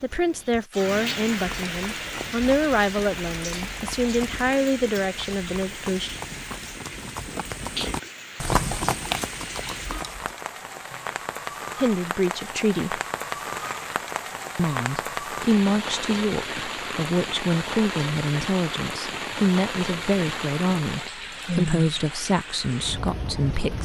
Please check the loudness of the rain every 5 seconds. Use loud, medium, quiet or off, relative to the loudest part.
loud, medium, loud, loud, loud.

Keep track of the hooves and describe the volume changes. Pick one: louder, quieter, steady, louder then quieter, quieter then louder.
louder.